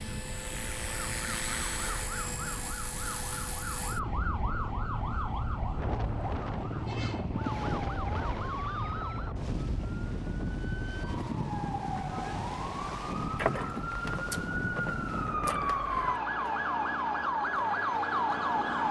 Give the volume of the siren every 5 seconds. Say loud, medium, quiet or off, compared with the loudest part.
medium, medium, medium, loud.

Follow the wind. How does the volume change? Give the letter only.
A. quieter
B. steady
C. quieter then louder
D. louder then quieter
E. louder
E.